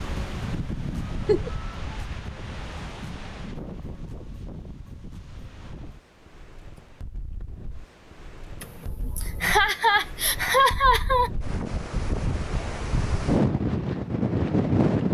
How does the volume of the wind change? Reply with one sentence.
The volume of the wind goes down, then up.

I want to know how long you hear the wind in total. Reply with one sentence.
You can hear the wind for 15 seconds altogether.